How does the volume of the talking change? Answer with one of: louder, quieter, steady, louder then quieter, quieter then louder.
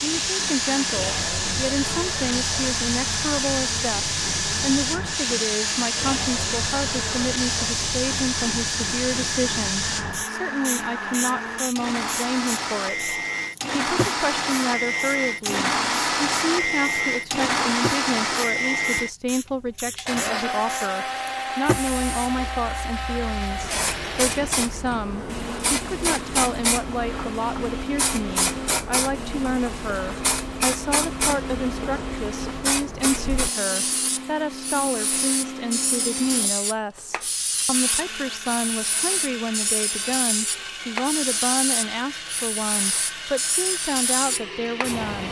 steady.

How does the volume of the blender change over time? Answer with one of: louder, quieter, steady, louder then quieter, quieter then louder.
louder then quieter.